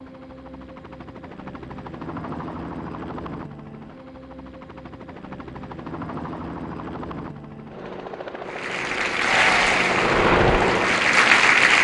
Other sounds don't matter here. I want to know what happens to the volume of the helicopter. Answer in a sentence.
The volume of the helicopter goes up.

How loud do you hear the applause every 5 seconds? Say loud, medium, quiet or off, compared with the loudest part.
off, loud, loud.